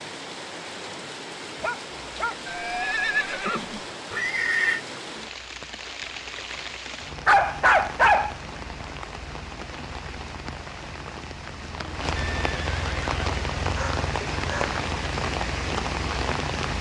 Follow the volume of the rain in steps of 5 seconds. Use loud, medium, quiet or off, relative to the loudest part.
medium, medium, loud, loud.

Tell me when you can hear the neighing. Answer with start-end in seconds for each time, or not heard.
2.5-4.8, 12.2-13.4.